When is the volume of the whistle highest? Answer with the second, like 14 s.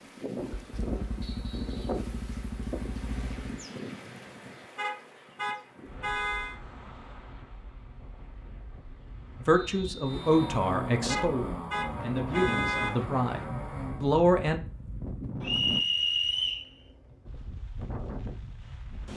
16 s.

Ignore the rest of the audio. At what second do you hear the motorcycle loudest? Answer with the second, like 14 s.
11 s.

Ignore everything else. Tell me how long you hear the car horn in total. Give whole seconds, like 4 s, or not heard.
4 s.